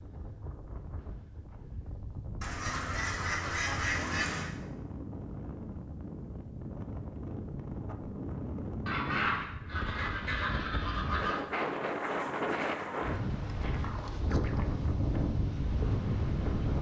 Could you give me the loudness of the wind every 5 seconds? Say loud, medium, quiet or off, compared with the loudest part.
quiet, medium, loud, loud.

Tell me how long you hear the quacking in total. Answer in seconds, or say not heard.
5 s.